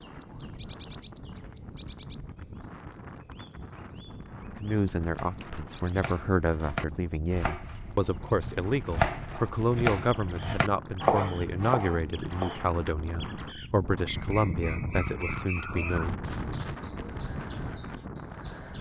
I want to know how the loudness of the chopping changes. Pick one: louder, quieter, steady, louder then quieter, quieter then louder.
louder.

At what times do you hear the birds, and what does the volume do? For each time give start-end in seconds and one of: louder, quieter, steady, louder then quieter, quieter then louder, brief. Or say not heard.
0.0-18.7 quieter then louder.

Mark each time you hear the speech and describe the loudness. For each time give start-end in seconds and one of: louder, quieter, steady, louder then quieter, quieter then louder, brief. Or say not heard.
4.6-16.2 steady.